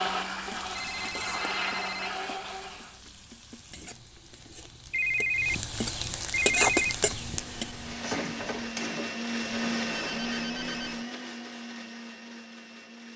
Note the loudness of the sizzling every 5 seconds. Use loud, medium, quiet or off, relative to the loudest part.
quiet, loud, off.